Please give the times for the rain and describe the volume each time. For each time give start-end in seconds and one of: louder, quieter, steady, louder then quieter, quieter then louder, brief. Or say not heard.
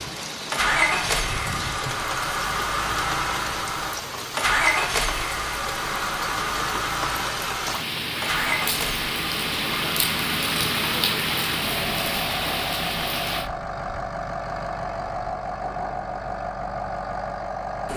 0.0-13.5 louder.